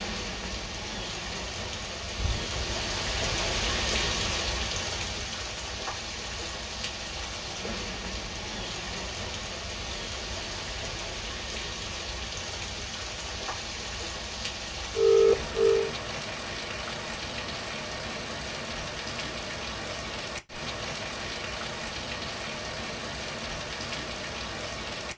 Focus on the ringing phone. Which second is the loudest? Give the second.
15 s.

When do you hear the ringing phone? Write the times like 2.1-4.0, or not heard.
2.1-2.8, 14.9-15.9.